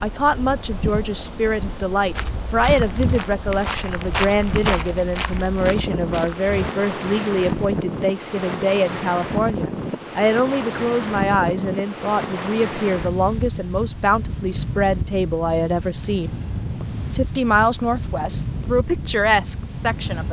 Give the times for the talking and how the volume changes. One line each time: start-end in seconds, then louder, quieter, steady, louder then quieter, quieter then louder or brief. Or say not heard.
0.0-20.2 steady.